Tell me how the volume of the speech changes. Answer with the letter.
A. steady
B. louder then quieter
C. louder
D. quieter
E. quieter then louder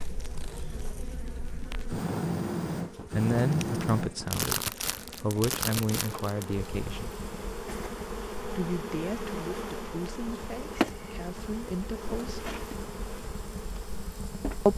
E.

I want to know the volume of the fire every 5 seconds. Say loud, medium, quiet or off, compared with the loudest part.
loud, medium, quiet.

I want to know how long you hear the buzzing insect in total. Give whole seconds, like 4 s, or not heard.
15 s.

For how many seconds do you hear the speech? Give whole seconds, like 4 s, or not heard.
8 s.